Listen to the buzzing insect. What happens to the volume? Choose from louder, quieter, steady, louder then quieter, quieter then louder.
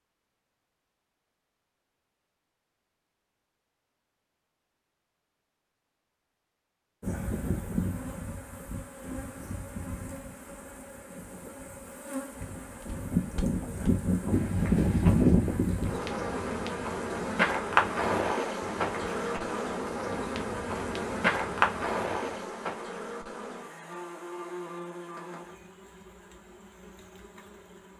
louder then quieter.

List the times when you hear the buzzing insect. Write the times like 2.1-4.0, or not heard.
7.0-27.9.